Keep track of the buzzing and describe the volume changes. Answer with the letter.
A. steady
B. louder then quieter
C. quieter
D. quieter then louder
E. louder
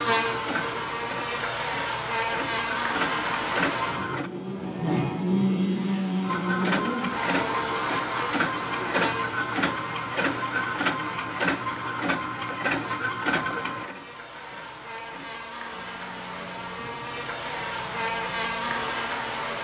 D.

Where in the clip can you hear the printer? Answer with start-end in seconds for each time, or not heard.
0.0-4.3, 6.2-19.3.